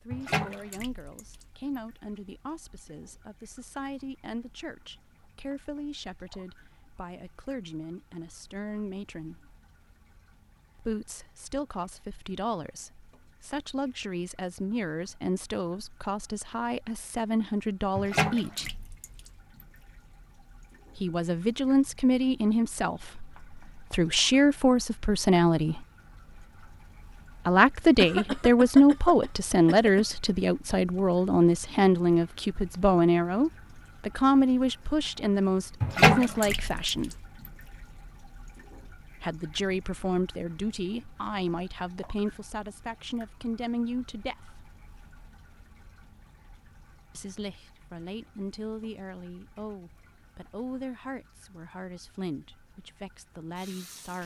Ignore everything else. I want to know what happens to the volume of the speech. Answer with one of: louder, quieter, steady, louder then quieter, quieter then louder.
louder then quieter.